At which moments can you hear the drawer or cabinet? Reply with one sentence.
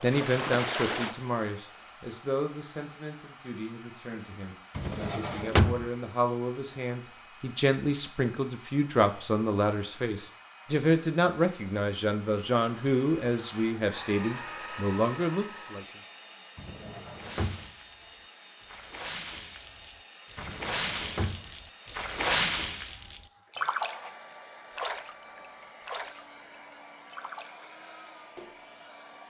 You can hear the drawer or cabinet from 4.8 to 5.8 s, from 16.6 to 17.7 s and from 20.4 to 21.5 s.